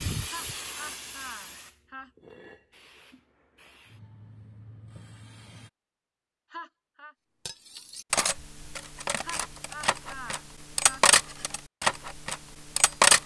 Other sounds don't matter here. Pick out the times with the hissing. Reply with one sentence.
You can hear the hissing from 0.0 to 5.7 s.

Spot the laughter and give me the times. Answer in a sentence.
You can hear the laughter from 0.2 to 2.1 s, from 6.5 to 7.2 s and from 9.2 to 11.1 s.